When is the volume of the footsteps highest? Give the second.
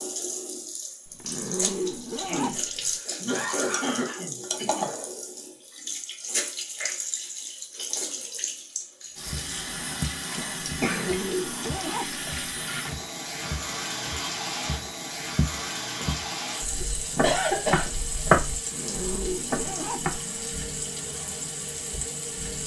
18 s.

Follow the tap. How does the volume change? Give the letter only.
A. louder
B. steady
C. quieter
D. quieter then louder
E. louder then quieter
B.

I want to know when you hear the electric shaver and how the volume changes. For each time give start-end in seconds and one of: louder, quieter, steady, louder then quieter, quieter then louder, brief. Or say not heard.
not heard.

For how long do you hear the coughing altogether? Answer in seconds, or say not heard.
4 s.